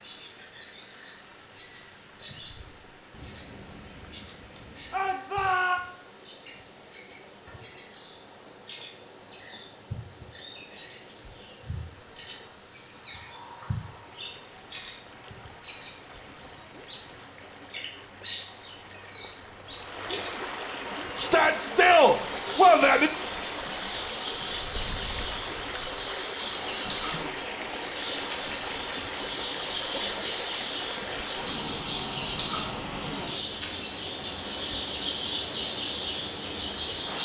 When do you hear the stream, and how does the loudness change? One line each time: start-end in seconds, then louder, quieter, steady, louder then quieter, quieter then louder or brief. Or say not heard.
0.0-37.2 louder.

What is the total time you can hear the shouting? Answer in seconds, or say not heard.
3 s.